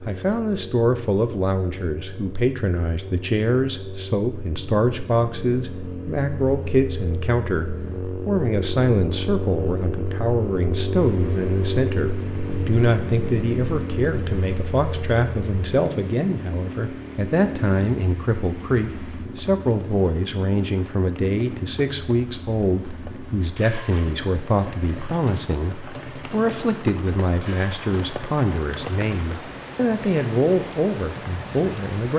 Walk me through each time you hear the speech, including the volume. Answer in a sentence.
You can hear the speech from 0.1 to 32.1 s, at a steady volume.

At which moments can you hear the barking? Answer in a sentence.
You can't hear the barking here.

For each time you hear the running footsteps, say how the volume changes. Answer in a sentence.
You can't hear the running footsteps here.